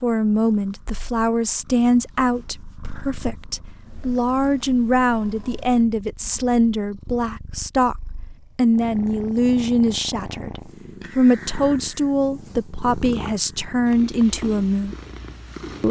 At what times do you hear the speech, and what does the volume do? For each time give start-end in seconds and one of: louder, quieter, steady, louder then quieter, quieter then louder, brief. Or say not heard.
0.0-14.9 steady.